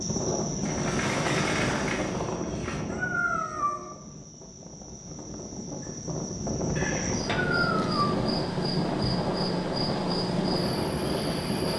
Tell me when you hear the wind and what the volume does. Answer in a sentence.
You can hear the wind from 0.0 to 11.7 s, getting quieter then louder.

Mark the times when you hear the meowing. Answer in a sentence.
The meowing can be heard from 2.9 to 3.9 s and from 7.2 to 8.2 s.